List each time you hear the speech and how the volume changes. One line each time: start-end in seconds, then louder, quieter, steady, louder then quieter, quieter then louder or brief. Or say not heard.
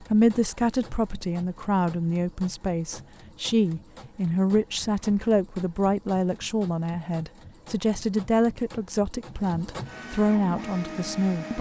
0.0-11.5 steady.